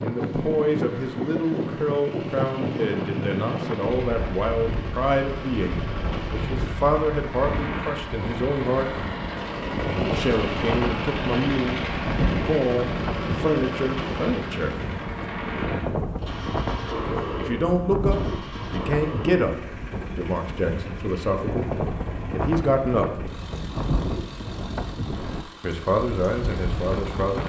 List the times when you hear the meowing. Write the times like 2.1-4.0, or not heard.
not heard.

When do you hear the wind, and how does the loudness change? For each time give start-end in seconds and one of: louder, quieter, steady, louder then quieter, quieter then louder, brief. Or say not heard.
0.0-27.4 steady.